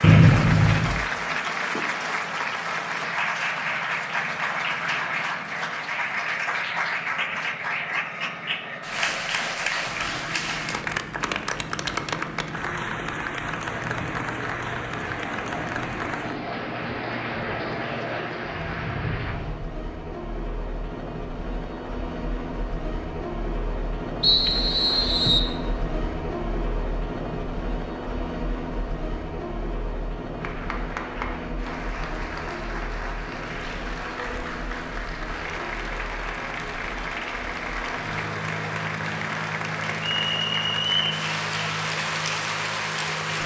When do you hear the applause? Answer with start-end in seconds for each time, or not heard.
0.0-19.4, 30.4-43.4.